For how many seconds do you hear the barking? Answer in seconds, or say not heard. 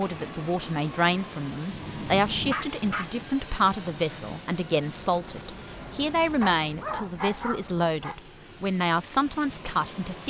3 s.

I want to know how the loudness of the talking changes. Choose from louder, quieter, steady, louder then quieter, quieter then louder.
steady.